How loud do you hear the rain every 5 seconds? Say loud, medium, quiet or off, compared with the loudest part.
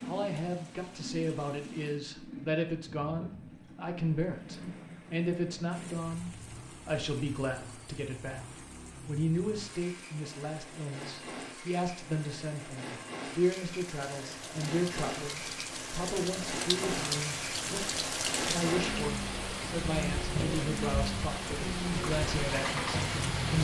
quiet, quiet, quiet, loud, loud.